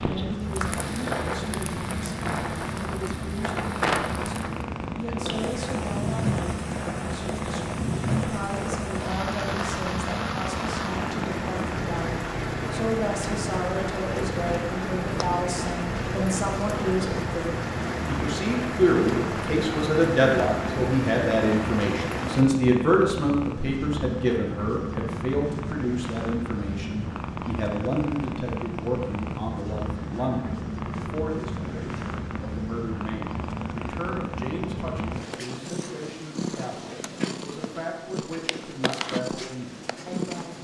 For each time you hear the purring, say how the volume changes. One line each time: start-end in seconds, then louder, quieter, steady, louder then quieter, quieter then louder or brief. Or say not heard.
0.0-40.5 steady.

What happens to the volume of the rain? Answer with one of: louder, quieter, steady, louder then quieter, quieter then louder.
steady.